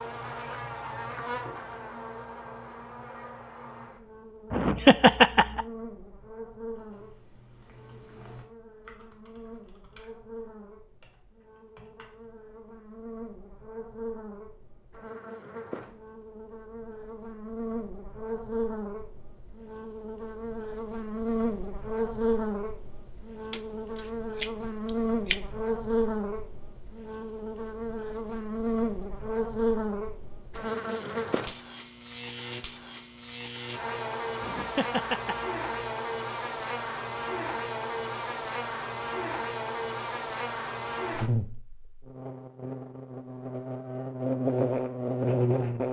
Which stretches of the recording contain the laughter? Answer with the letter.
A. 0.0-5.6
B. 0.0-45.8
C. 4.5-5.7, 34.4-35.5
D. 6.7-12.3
C.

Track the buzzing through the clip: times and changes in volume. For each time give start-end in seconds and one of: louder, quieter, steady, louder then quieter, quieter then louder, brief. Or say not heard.
0.0-45.8 louder.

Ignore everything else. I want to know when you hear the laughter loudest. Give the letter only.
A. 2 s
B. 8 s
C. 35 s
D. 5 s
D.